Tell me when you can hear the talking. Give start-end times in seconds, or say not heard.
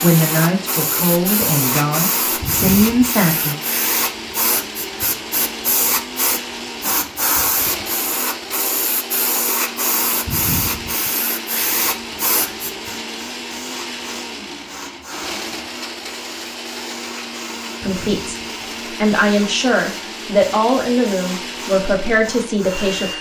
0.0-3.5, 17.8-23.1.